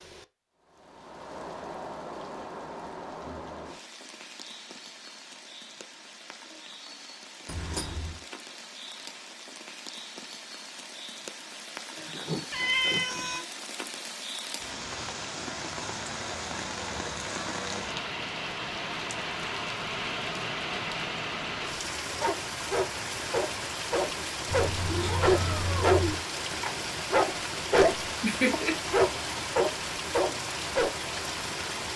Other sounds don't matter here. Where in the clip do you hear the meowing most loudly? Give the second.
13 s.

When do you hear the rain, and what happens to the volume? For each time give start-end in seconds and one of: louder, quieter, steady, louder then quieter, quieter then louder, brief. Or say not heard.
0.0-31.9 louder.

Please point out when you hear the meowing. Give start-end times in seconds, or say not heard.
7.5-8.2, 12.5-13.4, 24.5-26.2.